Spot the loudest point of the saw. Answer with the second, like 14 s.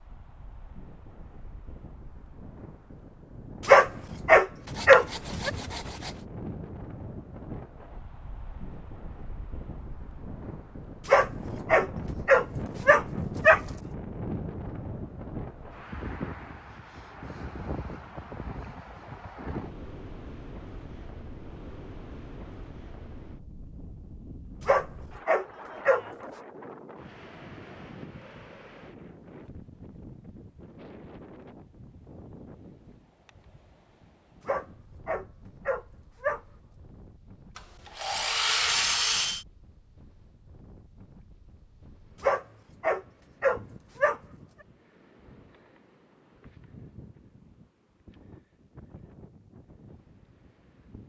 39 s.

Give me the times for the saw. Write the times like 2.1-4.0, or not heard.
4.7-6.2, 37.5-39.5.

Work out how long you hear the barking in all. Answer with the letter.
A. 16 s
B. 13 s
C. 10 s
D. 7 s
C.